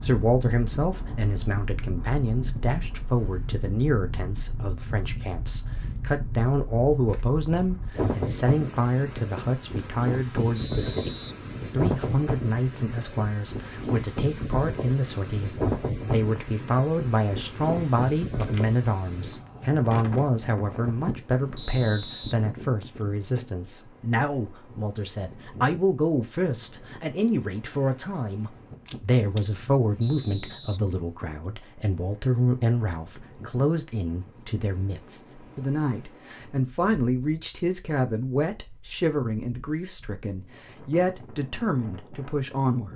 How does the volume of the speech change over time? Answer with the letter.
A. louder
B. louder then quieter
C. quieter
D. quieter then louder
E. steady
E.